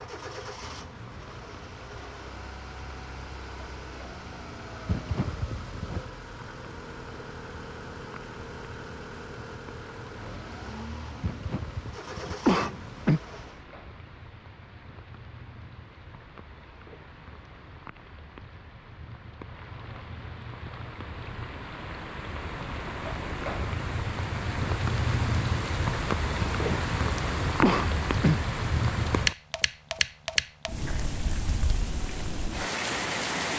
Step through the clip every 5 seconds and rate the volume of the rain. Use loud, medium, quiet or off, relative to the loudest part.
quiet, quiet, quiet, quiet, medium, loud, loud.